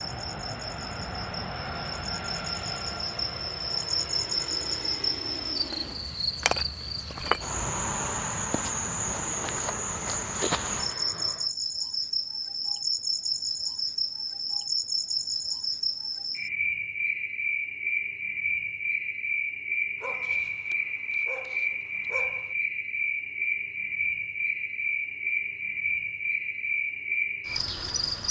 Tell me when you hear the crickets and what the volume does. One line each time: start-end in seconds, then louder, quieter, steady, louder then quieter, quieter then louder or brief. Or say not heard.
0.0-28.2 steady.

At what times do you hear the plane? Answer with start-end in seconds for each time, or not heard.
0.0-11.6.